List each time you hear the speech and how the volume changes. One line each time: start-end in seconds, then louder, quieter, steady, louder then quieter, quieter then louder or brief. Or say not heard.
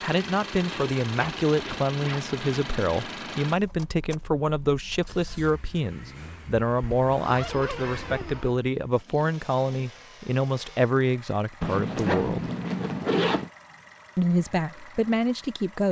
0.0-12.5 steady
14.2-15.8 brief.